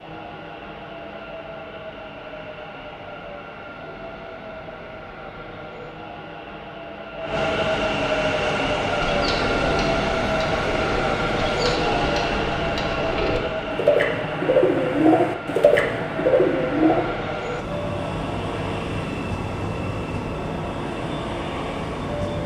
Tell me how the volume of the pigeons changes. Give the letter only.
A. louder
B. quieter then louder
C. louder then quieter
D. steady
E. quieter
A.